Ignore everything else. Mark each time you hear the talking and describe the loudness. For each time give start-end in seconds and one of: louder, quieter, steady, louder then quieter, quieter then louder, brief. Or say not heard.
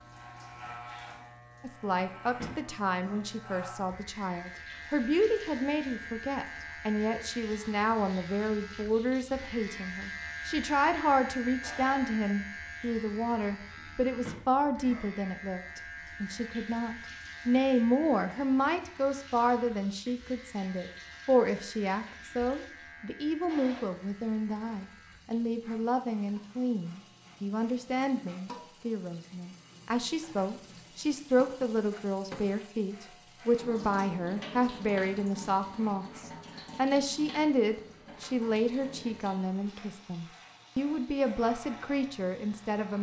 1.6-42.9 steady.